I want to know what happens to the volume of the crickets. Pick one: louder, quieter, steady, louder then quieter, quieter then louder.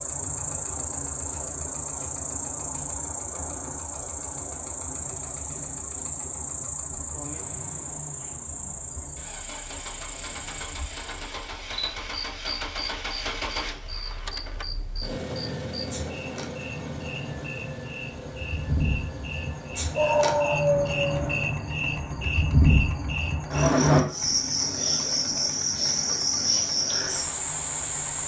quieter then louder.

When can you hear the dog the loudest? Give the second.
20 s.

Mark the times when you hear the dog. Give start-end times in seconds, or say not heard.
19.9-21.5.